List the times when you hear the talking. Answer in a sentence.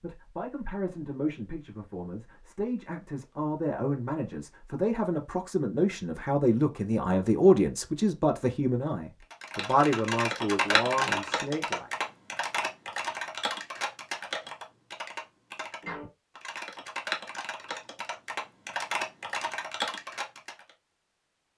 You can hear the talking from 0.0 to 11.9 s.